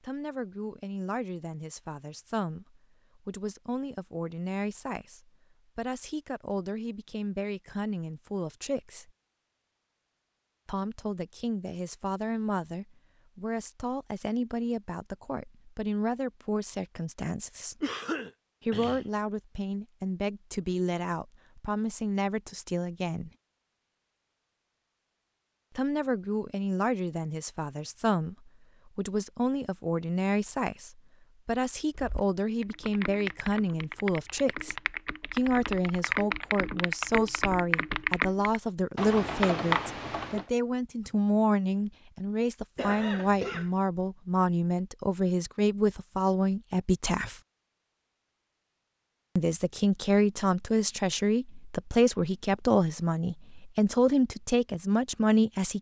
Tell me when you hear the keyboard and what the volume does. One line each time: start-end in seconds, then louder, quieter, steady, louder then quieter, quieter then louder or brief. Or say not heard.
31.9-40.5 louder.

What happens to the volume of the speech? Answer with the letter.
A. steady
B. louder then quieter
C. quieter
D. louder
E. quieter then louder
D.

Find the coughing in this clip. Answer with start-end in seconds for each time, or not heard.
17.8-19.1, 42.8-43.7.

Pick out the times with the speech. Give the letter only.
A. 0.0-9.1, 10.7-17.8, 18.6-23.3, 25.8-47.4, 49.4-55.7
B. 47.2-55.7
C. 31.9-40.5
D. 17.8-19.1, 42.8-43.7
A.